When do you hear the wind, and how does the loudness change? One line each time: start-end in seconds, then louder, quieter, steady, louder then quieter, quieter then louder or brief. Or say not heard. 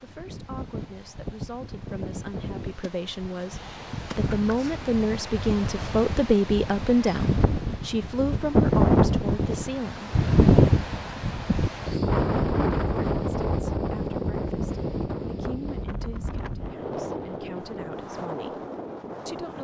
0.0-19.5 louder then quieter.